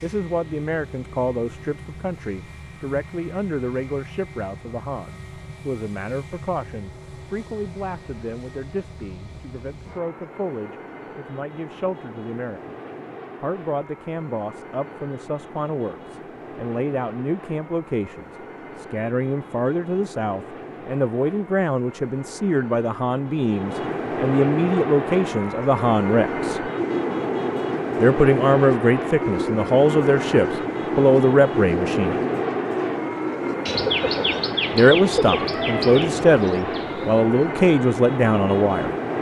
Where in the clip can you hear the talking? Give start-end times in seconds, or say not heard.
0.0-12.8, 13.4-26.6, 28.0-32.1, 34.7-38.9.